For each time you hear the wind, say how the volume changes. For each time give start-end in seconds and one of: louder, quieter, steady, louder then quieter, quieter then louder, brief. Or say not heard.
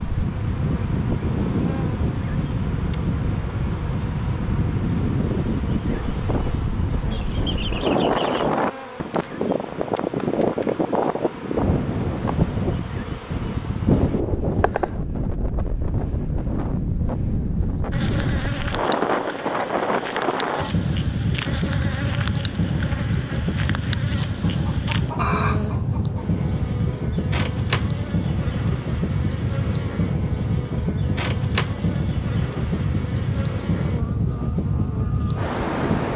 0.0-36.1 steady.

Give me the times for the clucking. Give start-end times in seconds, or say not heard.
7.1-8.6, 23.9-26.2.